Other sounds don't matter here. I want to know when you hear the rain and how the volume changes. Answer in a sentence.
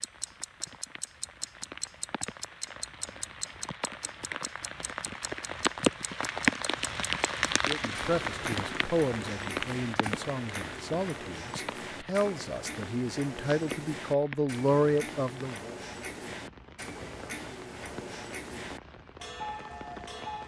The rain can be heard from 0.0 to 20.4 s, getting louder then quieter.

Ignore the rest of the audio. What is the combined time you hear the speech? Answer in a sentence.
You can hear the speech for 8 seconds altogether.